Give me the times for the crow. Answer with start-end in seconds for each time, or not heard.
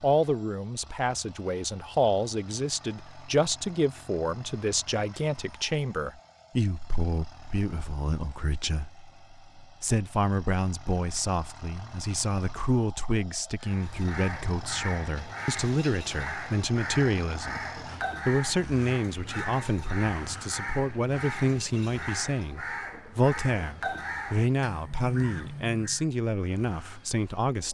13.6-26.1.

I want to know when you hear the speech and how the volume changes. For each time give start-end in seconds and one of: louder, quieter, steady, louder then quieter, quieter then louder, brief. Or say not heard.
0.0-27.6 steady.